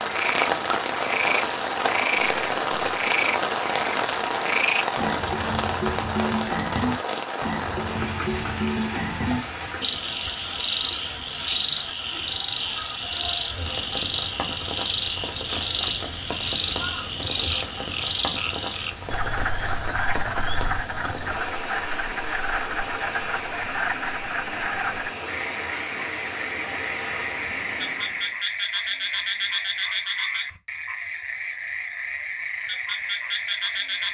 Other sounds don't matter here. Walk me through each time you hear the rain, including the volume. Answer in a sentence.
You can hear the rain from 0.0 to 28.4 s, getting quieter.